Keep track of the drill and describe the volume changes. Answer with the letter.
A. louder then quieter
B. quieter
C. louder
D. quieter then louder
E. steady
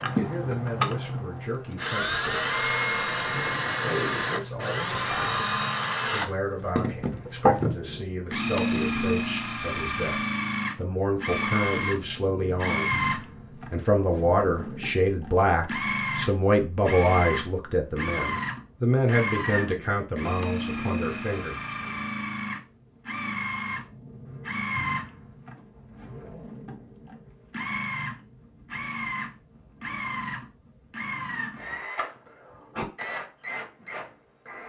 B.